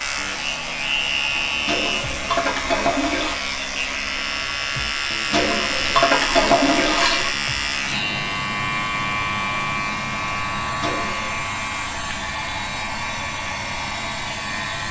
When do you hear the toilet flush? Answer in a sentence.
The toilet flush can be heard from 1.6 to 3.4 s, from 5.3 to 7.3 s and from 10.8 to 11.3 s.